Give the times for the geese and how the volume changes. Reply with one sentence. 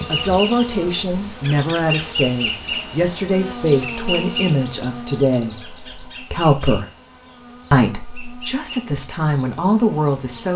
You can't hear the geese here.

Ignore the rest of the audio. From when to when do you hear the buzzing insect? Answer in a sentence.
The buzzing insect can be heard from 0.0 to 10.5 s.